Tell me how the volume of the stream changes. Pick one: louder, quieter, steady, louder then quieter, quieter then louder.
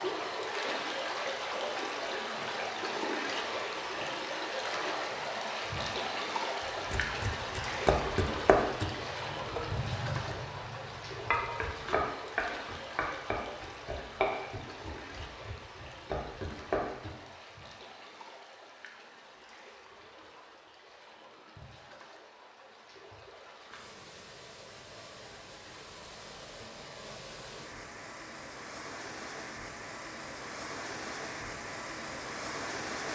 quieter then louder.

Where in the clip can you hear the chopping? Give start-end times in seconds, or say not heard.
6.9-17.1.